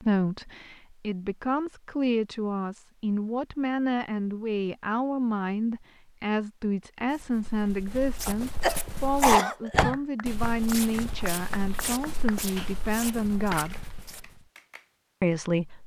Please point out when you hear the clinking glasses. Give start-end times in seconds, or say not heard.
not heard.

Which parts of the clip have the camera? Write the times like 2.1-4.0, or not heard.
13.5-14.2.